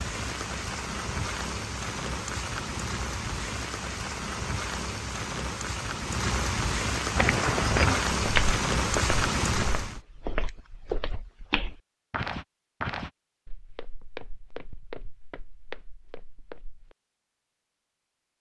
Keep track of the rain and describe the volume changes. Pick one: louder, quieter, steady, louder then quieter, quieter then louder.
louder.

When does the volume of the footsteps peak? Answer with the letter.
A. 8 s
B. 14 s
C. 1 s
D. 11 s
A.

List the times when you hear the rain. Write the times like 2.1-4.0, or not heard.
0.0-10.0.